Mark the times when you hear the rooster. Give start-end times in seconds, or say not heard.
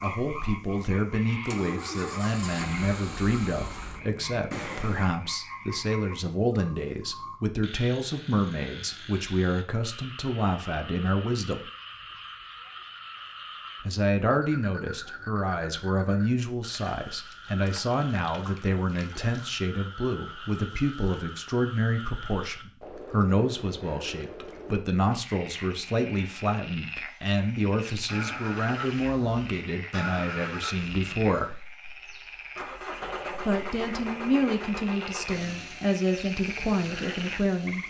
not heard.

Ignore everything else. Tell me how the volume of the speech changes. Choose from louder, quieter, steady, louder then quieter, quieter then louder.
steady.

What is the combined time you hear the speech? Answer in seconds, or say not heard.
34 s.